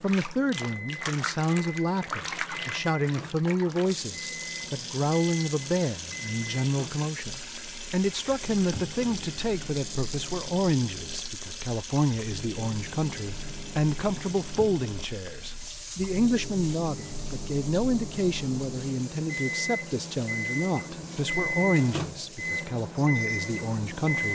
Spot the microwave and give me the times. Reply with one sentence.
The microwave can be heard from 0.0 to 24.3 s.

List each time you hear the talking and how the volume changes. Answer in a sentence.
The talking can be heard from 0.0 to 24.3 s, at a steady volume.